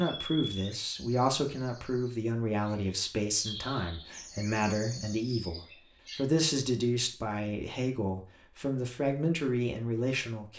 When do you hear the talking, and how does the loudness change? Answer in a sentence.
You can hear the talking from 0.0 to 10.5 s, at a steady volume.